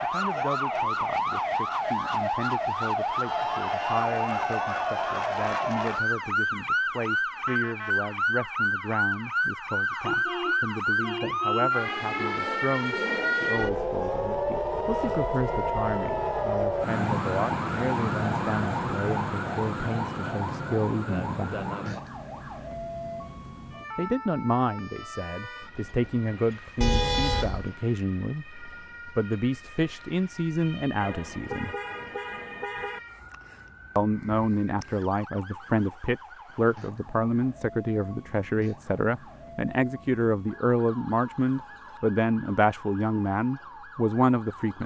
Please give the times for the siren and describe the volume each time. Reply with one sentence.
The siren can be heard from 0.0 to 44.8 s, getting quieter.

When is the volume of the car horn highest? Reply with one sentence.
The loudest moment of the car horn is at 27 seconds.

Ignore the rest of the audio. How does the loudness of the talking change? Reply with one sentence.
The volume of the talking goes up.